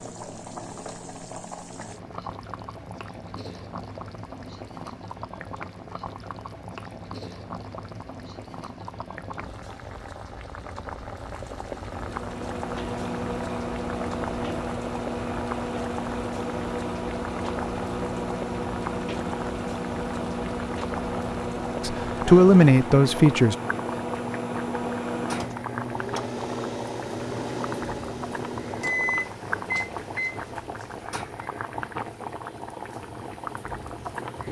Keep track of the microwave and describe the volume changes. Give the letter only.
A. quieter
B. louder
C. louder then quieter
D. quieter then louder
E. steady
E.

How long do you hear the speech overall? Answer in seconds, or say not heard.
2 s.